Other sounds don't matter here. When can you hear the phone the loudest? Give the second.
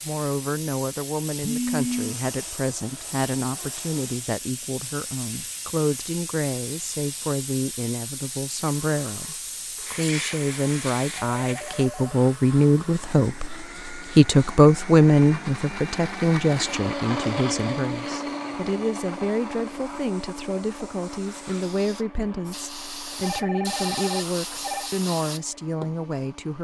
2 s.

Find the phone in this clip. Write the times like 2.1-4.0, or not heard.
1.4-2.1, 11.2-12.2, 23.2-24.9.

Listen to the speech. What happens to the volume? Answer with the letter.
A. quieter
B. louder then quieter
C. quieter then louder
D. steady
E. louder
B.